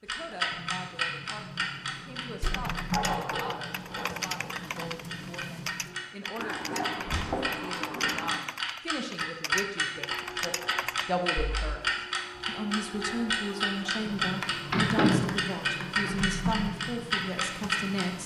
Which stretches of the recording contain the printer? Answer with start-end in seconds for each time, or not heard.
0.1-6.2, 9.8-18.2.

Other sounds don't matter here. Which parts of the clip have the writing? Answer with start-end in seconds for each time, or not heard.
2.7-4.5, 6.3-8.4, 13.5-16.1.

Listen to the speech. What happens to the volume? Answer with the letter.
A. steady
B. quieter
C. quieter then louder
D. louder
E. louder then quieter
D.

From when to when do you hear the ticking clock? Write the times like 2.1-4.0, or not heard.
0.1-18.2.